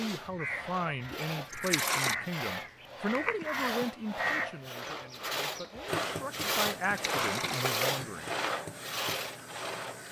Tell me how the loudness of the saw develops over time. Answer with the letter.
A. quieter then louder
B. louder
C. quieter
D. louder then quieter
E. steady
B.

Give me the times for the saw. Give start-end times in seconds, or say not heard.
0.0-10.0.